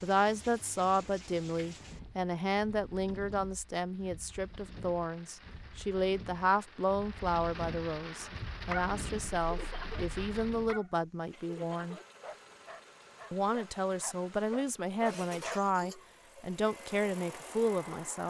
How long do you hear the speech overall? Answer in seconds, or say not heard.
17 s.